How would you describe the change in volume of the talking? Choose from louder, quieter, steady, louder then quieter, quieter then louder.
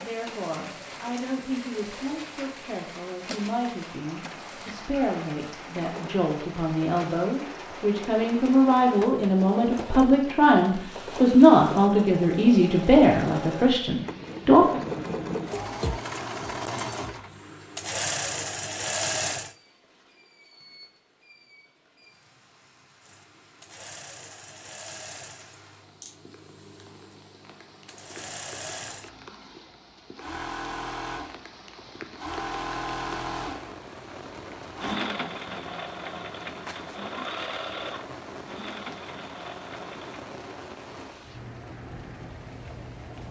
louder.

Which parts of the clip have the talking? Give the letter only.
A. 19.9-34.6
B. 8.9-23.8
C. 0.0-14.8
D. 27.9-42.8
C.